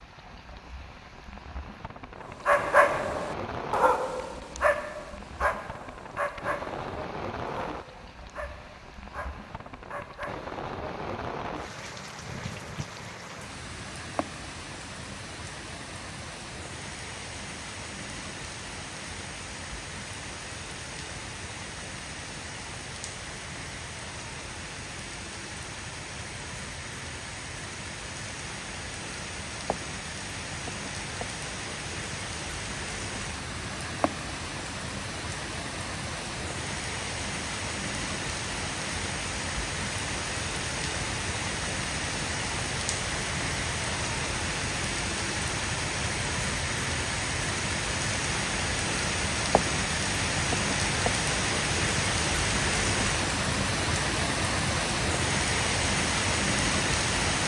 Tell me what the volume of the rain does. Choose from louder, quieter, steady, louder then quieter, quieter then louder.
louder.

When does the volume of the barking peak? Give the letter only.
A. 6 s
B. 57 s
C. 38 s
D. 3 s
D.